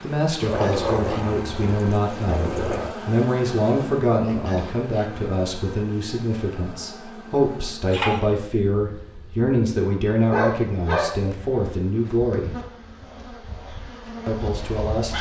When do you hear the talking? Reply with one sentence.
The talking can be heard from 0.0 to 12.6 s and from 14.2 to 15.1 s.